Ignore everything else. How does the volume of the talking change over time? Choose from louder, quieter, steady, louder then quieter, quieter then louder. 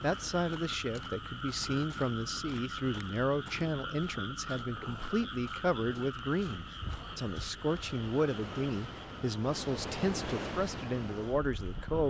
steady.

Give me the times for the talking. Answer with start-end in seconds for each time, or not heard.
0.0-12.0.